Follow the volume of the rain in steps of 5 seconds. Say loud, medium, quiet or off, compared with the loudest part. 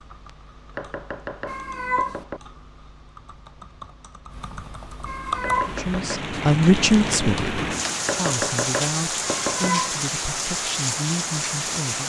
off, loud, loud.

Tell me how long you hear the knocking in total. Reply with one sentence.
The knocking can be heard for 4 seconds in total.